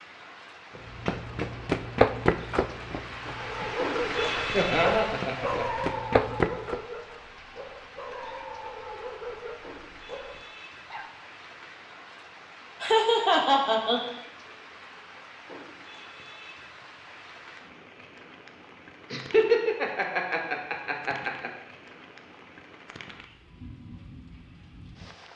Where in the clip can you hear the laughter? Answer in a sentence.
The laughter can be heard from 4.5 to 6.0 s, from 12.8 to 14.0 s and from 19.1 to 21.5 s.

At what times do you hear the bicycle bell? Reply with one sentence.
You can't hear the bicycle bell here.